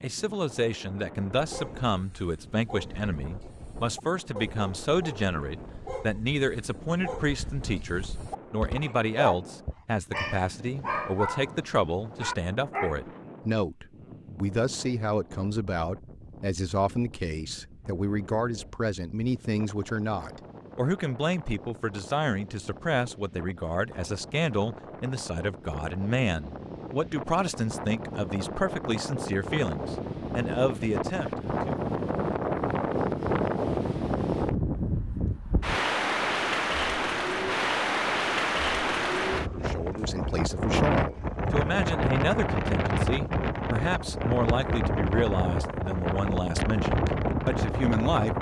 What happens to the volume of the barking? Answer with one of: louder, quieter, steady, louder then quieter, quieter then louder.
louder.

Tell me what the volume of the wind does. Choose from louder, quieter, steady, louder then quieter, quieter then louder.
louder.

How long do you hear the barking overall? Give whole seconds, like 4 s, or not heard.
12 s.